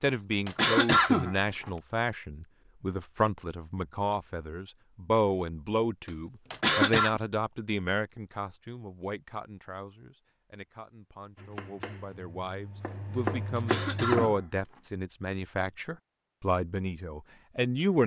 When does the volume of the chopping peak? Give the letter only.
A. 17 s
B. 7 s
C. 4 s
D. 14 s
D.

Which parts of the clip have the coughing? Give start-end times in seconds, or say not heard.
0.0-1.7, 6.0-7.2, 13.1-14.8.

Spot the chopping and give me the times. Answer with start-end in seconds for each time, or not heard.
11.3-14.3.